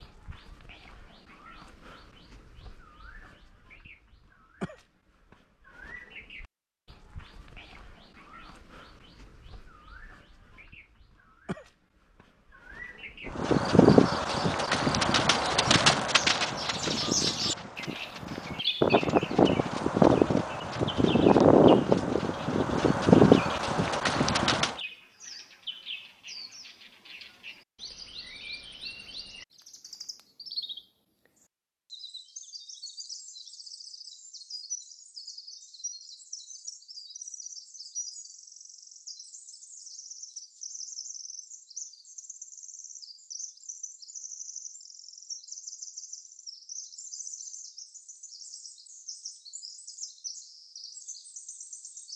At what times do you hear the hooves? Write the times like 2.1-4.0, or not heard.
13.2-24.8.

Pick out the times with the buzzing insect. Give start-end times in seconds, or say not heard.
not heard.